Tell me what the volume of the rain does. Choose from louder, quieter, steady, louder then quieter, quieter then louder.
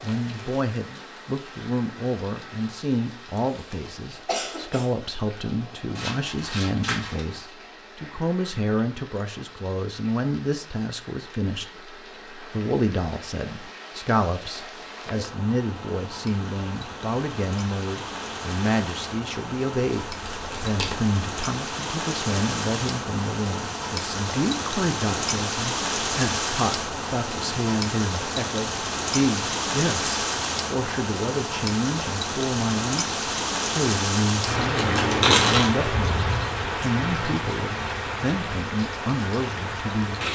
louder.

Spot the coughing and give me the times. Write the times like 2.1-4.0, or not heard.
3.4-4.9.